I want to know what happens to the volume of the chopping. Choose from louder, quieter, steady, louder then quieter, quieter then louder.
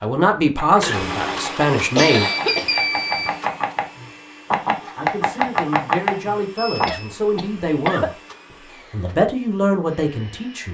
louder.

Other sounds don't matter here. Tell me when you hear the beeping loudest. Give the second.
3 s.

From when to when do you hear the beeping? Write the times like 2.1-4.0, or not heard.
1.9-3.3, 6.5-7.2.